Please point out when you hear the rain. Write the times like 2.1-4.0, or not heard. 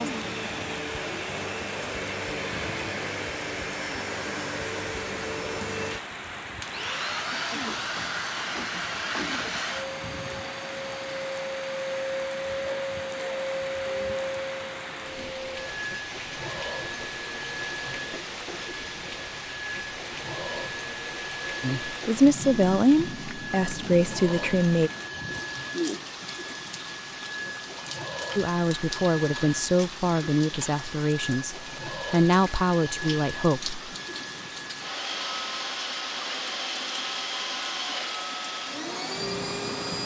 0.0-40.0.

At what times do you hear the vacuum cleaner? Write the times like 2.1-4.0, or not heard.
0.0-40.0.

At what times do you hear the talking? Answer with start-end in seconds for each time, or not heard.
21.6-24.9, 28.4-33.9.